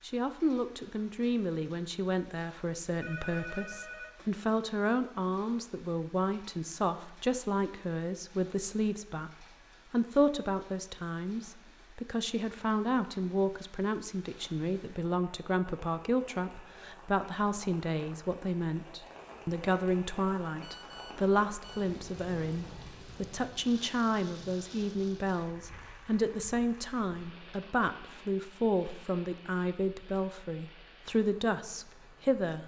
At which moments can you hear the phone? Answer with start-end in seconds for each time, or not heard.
3.0-4.2, 20.6-21.9.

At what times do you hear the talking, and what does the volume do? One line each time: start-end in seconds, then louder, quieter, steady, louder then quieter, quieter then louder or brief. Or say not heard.
0.0-32.6 steady.